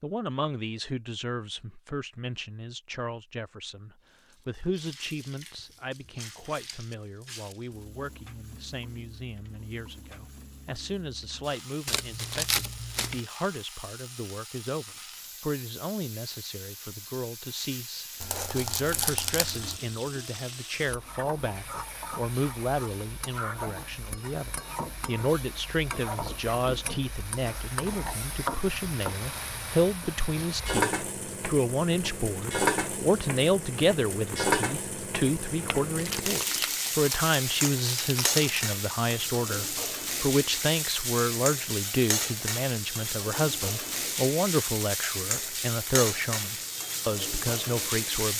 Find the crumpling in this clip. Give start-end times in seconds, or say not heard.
11.8-13.2, 18.2-19.8, 36.0-38.6.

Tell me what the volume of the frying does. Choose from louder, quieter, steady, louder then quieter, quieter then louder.
louder.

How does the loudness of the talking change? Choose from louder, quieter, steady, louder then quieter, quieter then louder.
louder.